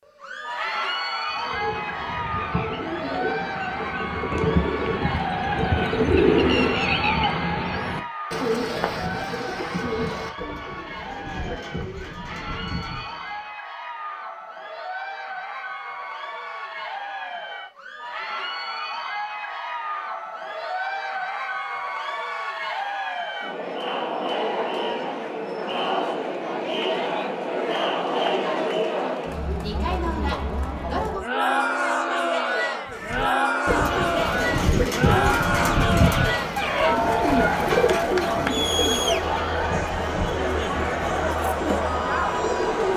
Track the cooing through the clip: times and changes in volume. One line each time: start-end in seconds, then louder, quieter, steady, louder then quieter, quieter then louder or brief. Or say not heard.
1.3-13.5 louder then quieter
32.9-42.9 quieter.